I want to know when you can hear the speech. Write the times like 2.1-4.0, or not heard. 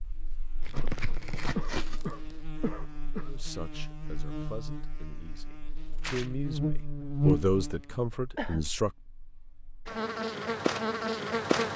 3.2-8.9.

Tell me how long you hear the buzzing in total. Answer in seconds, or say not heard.
12 s.